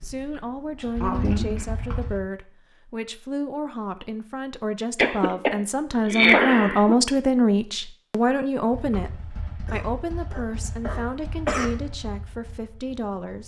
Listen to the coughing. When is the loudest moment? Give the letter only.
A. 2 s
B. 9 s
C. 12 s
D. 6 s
D.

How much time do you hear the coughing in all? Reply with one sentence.
The coughing can be heard for 5 seconds in total.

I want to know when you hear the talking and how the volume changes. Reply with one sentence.
The talking can be heard from 0.0 to 13.4 s, getting louder then quieter.